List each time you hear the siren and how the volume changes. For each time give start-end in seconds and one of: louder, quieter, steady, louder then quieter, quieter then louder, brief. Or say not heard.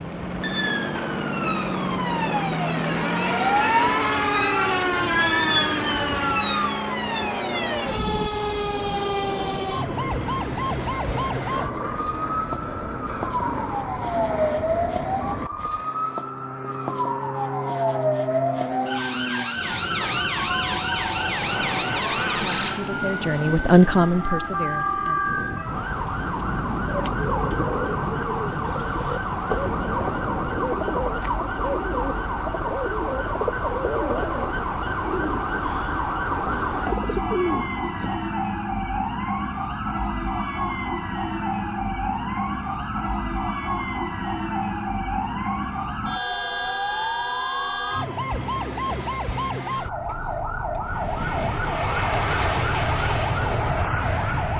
0.0-54.5 steady.